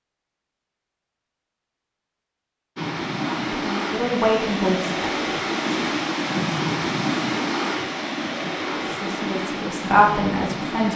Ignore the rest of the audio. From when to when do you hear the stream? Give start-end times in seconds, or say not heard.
2.8-10.9.